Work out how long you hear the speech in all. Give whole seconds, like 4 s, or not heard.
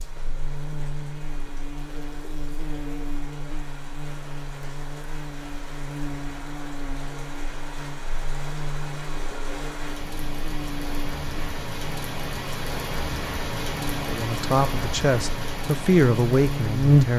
3 s.